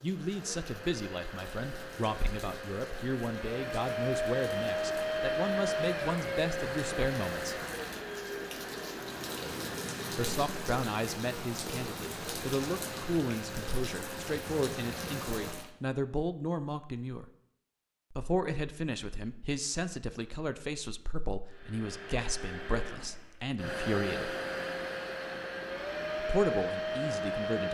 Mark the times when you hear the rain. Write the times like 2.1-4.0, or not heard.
0.0-15.7.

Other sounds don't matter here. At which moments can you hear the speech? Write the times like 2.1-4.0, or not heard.
0.0-7.6, 10.1-17.2, 18.1-24.4, 26.1-27.6.